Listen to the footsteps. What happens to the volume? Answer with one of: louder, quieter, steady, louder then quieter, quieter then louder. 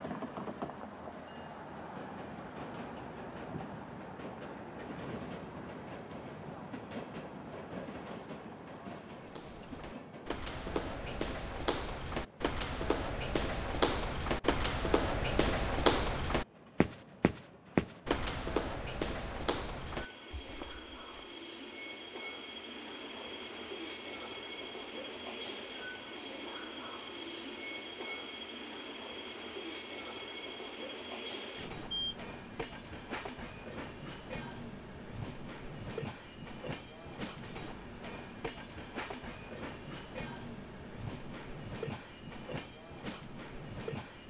louder then quieter.